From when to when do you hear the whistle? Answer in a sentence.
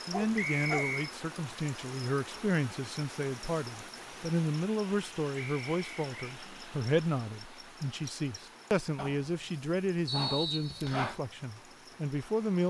You can hear the whistle from 0.3 to 1.1 s, from 5.3 to 6.1 s and from 10.1 to 11.2 s.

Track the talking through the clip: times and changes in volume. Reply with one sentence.
The talking can be heard from 0.1 to 12.6 s, at a steady volume.